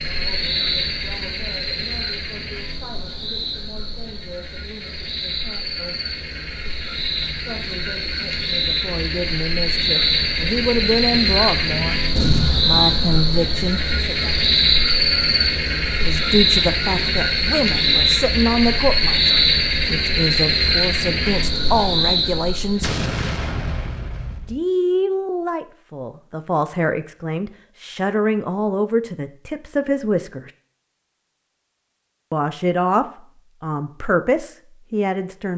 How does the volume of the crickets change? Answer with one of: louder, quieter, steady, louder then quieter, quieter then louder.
louder.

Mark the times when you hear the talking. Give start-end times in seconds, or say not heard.
0.0-6.0, 7.5-11.9, 12.6-14.3, 15.9-22.9, 24.4-30.5, 32.3-35.5.